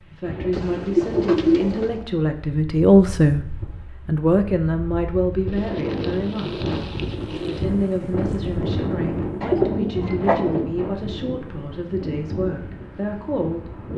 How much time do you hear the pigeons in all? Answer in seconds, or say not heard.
5 s.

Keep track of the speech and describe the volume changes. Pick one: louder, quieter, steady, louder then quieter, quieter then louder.
louder then quieter.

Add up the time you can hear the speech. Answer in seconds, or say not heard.
13 s.